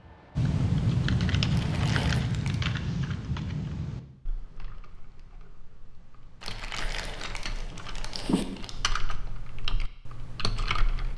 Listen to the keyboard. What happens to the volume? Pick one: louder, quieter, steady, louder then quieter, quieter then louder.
quieter then louder.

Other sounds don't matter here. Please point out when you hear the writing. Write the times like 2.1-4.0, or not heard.
0.0-2.2, 6.8-8.4.